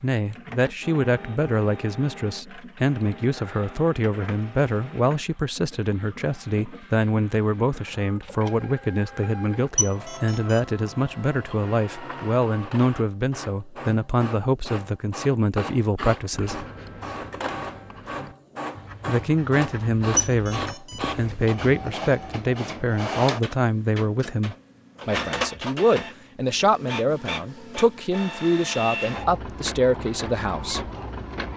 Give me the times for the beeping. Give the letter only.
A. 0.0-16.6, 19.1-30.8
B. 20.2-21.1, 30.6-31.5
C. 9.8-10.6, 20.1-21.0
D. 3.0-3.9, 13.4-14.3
C.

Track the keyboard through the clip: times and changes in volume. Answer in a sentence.
The keyboard can't be heard in this clip.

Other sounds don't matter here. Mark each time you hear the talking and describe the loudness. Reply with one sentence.
You can hear the talking from 0.0 to 16.6 s, at a steady volume; and from 19.1 to 30.8 s, at a steady volume.